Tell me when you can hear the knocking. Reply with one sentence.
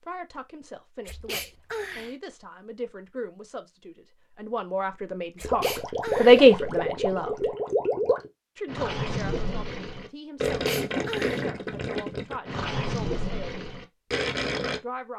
You can't hear the knocking here.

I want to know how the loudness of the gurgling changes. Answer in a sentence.
The loudness of the gurgling stays about the same.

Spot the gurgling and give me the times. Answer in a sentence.
The gurgling can be heard from 5.4 to 14.8 s.